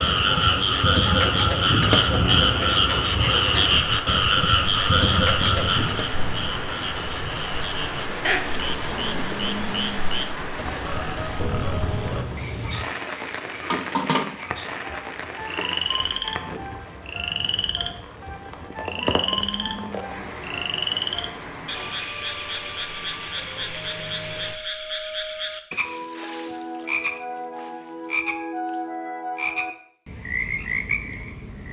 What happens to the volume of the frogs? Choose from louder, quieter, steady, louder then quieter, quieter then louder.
quieter.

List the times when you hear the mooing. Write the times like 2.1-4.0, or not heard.
8.9-10.3, 18.6-20.2.